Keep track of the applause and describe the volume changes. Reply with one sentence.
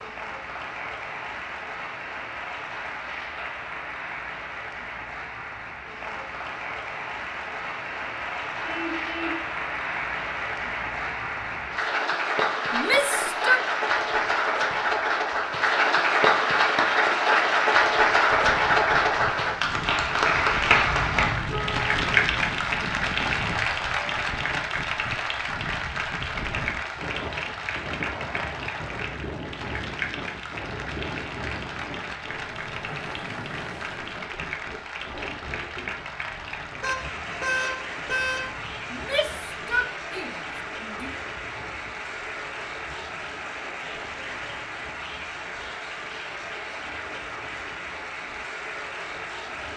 The volume of the applause goes up, then down.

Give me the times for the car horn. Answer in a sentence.
The car horn can be heard from 8.7 to 9.4 s, from 20.9 to 22.6 s and from 36.8 to 38.5 s.